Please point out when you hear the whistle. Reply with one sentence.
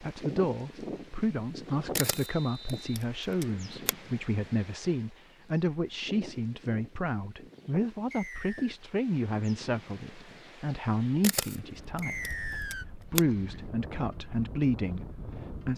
You can hear the whistle from 2.1 to 3.0 s, from 8.1 to 8.8 s and from 12.0 to 12.8 s.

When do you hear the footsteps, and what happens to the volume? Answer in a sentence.
You can't hear the footsteps here.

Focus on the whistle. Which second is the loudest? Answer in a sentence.
The loudest moment of the whistle is at 12 seconds.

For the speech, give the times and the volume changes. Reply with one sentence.
The speech can be heard from 0.0 to 15.7 s, at a steady volume.